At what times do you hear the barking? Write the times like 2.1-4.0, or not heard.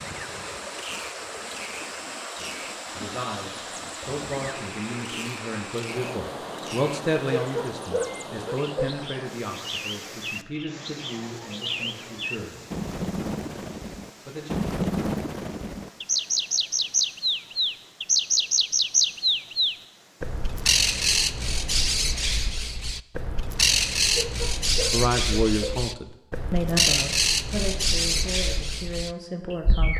7.2-8.9, 24.1-25.9.